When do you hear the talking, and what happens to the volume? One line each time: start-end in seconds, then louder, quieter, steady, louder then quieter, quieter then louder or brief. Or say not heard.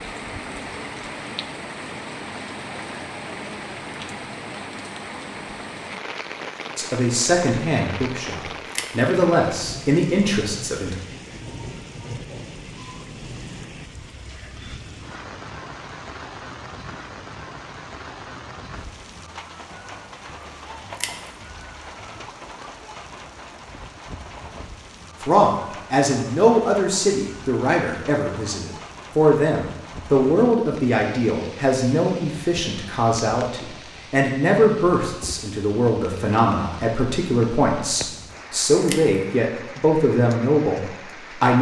6.8-10.9 quieter then louder
25.2-41.5 steady.